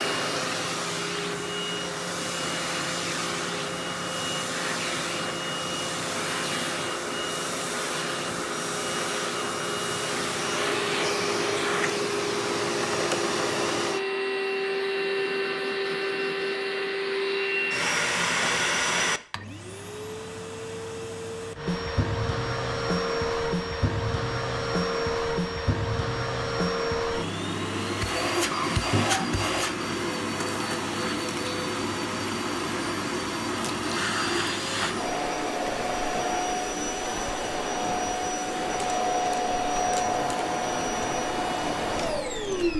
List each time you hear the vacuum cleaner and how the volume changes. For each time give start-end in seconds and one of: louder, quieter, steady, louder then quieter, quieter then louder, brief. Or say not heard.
0.0-42.7 steady.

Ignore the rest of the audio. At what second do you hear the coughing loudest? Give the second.
29 s.